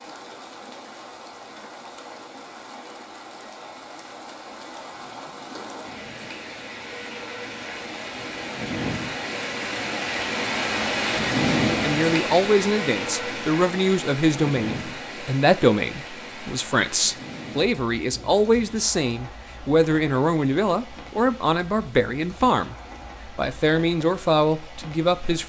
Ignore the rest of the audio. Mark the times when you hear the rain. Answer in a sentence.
The rain can be heard from 0.0 to 25.4 s.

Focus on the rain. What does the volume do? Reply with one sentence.
The volume of the rain goes up, then down.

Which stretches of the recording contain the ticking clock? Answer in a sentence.
You can't hear the ticking clock here.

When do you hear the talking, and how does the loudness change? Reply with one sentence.
The talking can be heard from 11.8 to 25.4 s, at a steady volume.